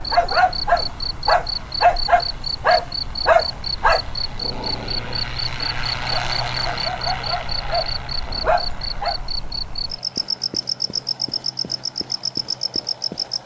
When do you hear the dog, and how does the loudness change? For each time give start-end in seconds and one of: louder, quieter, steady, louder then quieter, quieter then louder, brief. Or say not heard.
0.1-9.2 quieter then louder.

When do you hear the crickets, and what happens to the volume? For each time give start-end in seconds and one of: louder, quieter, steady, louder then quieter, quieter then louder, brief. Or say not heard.
0.0-13.4 steady.